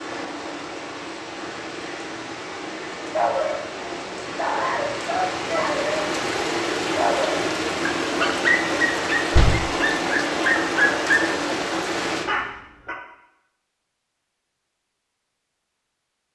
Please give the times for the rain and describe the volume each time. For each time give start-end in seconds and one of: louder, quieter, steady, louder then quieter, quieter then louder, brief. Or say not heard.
0.0-12.3 louder.